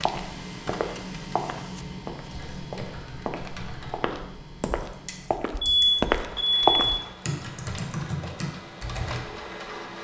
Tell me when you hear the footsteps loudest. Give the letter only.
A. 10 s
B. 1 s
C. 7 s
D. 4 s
C.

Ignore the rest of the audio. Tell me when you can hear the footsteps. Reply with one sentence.
You can hear the footsteps from 0.0 to 7.0 s.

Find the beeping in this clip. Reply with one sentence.
You can hear the beeping from 5.6 to 7.0 s.